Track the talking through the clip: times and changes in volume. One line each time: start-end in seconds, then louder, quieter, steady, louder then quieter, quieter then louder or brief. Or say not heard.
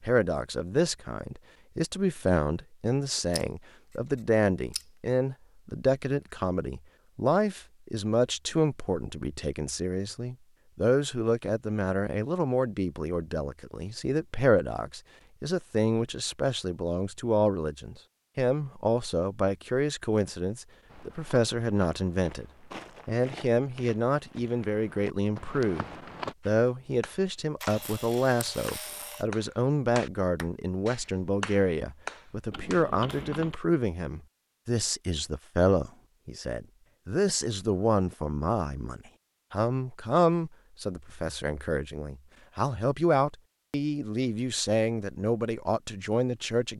0.0-22.4 steady
23.1-25.9 brief
26.4-46.7 steady.